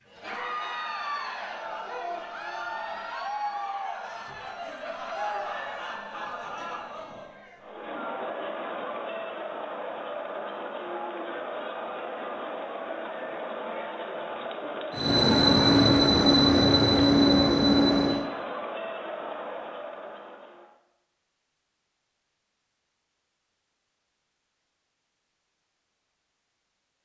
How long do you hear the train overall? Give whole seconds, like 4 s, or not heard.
3 s.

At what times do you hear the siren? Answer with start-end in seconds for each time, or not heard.
not heard.